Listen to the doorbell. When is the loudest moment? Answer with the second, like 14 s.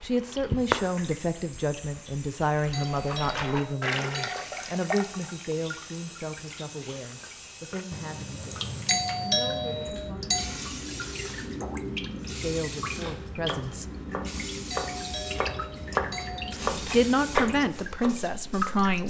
9 s.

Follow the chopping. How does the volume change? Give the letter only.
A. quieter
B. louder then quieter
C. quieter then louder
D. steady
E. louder
B.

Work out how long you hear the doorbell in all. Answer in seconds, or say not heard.
5 s.